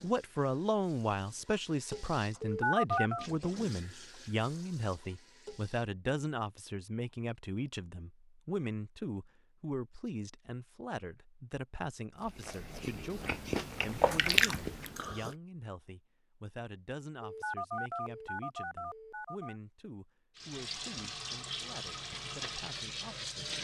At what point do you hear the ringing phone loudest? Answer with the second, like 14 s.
3 s.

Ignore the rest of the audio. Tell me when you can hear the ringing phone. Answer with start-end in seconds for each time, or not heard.
2.4-3.3, 17.2-19.6.